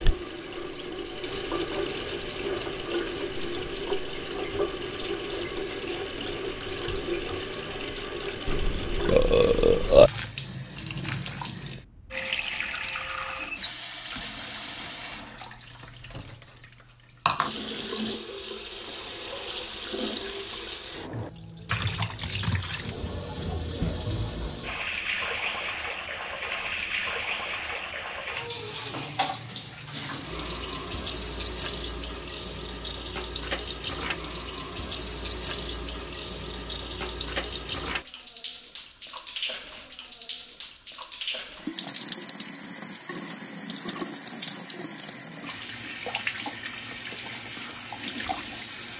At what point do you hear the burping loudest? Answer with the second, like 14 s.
10 s.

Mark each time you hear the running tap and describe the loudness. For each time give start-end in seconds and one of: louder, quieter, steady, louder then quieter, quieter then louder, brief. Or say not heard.
0.0-48.9 steady.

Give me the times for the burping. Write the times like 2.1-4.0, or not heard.
8.4-10.1.